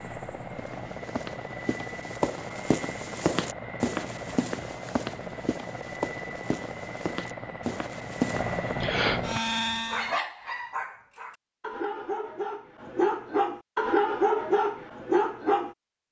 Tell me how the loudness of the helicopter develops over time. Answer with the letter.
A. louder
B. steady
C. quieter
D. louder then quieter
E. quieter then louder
A.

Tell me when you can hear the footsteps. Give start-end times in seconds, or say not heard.
0.6-8.8.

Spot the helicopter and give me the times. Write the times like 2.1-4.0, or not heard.
0.0-10.2.